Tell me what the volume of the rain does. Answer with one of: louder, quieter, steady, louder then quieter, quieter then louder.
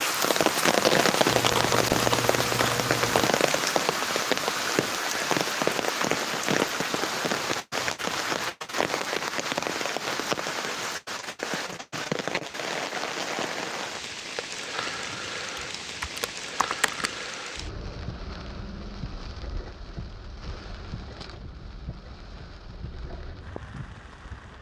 quieter.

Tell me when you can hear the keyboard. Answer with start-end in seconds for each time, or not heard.
1.2-3.3, 14.8-17.2.